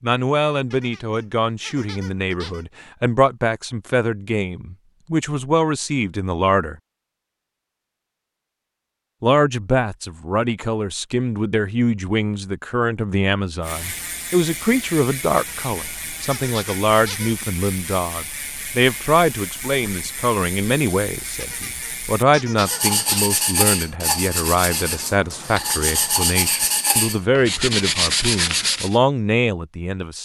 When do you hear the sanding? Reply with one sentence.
The sanding can be heard from 22.6 to 28.9 s.